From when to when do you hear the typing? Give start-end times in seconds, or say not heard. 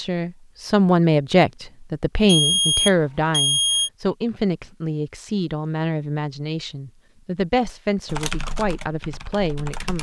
8.1-9.9.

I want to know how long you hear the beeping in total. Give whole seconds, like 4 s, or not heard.
2 s.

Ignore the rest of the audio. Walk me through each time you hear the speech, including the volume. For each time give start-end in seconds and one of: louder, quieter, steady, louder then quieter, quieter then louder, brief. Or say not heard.
0.0-9.9 quieter.